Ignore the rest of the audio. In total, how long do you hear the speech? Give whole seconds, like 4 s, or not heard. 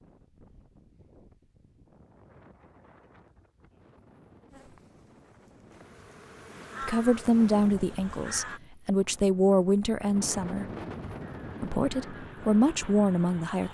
6 s.